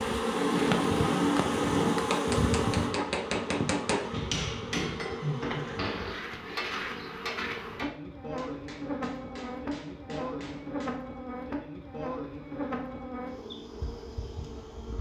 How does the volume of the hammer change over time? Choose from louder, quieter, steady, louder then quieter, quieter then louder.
quieter.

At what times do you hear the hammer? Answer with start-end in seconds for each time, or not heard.
0.2-10.9.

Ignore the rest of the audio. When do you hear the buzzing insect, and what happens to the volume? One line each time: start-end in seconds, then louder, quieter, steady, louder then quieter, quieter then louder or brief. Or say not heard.
0.0-14.9 quieter.